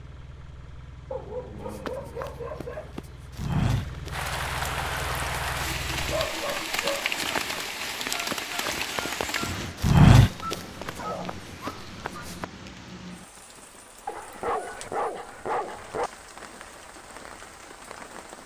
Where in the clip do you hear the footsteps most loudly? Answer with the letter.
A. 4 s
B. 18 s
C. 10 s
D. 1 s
C.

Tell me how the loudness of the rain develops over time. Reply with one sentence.
The volume of the rain goes down.